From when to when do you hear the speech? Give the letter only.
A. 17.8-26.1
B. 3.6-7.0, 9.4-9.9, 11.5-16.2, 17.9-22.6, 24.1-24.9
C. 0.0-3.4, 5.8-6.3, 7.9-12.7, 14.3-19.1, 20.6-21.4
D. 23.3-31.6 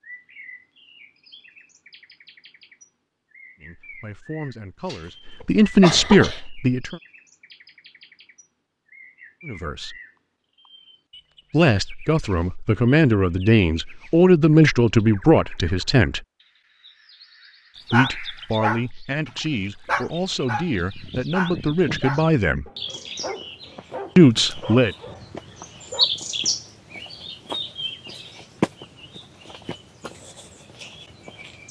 B.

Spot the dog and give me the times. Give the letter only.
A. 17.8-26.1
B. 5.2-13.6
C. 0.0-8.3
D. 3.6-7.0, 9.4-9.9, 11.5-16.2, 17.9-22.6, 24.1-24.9
A.